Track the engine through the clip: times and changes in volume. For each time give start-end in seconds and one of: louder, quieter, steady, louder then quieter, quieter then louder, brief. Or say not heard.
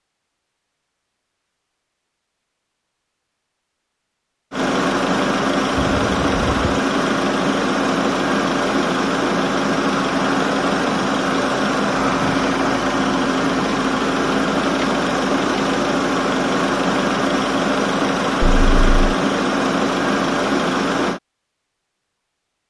4.5-21.2 steady.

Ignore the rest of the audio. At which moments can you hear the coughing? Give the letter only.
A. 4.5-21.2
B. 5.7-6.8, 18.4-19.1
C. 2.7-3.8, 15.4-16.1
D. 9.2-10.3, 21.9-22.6
B.